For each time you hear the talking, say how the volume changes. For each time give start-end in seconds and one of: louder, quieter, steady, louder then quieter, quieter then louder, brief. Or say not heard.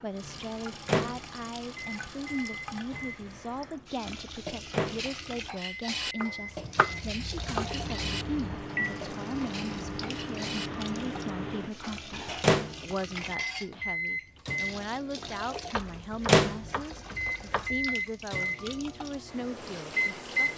0.0-20.5 steady.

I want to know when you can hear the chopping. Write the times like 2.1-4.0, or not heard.
6.2-8.7, 15.7-17.7.